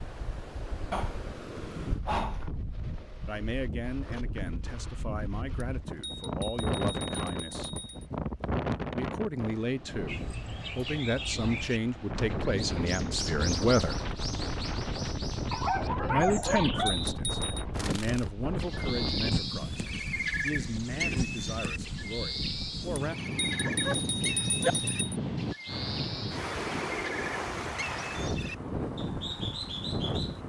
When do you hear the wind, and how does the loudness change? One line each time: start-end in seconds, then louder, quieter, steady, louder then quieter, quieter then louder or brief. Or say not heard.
0.0-30.4 louder.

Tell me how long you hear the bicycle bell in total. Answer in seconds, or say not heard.
6 s.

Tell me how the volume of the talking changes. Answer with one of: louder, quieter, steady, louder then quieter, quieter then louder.
louder then quieter.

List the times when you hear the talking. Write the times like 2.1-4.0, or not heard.
3.2-7.7, 8.9-14.0, 16.1-23.1.